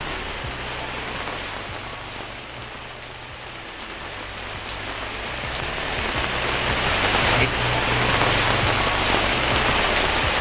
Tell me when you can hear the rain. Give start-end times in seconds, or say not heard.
0.0-10.3.